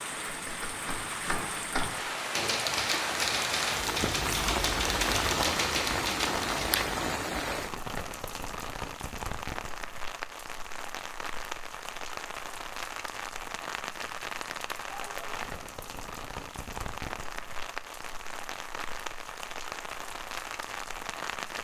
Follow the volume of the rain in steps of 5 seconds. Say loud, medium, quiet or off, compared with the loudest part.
loud, loud, medium, medium, medium.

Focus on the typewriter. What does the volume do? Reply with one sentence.
The loudness of the typewriter goes up.